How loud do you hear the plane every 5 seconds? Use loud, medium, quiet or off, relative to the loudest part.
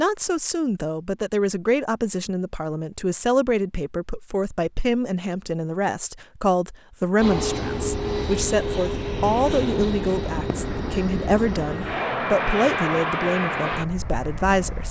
off, loud, loud.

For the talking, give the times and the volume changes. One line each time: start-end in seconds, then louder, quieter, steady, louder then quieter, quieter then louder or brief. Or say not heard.
0.0-14.8 steady.